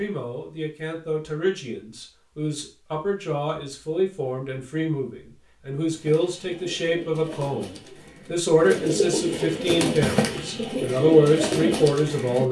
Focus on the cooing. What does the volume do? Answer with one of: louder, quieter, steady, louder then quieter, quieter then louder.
louder.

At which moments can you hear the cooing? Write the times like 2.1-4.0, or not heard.
5.9-12.4.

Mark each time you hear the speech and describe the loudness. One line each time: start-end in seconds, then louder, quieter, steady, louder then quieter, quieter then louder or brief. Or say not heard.
0.0-12.4 louder.